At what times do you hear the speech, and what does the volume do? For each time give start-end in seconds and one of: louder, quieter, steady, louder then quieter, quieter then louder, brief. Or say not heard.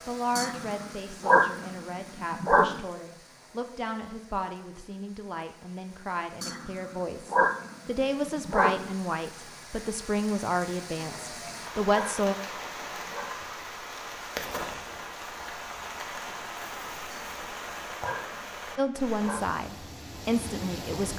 0.1-12.3 louder
18.8-21.1 brief.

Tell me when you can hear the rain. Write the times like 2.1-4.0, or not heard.
0.0-21.1.